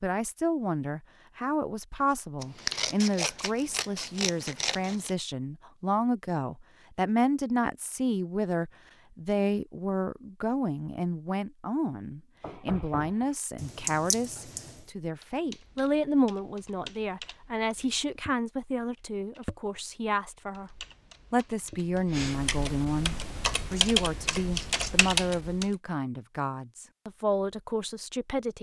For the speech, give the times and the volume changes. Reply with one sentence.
The speech can be heard from 0.0 to 28.5 s, at a steady volume.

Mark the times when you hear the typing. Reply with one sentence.
The typing can be heard from 15.2 to 18.4 s, from 18.9 to 19.8 s and from 20.5 to 25.6 s.